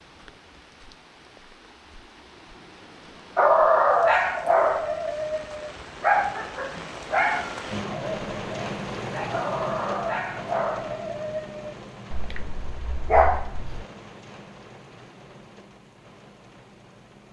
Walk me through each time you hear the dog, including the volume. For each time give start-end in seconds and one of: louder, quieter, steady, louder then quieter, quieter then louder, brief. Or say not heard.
3.4-13.8 quieter then louder.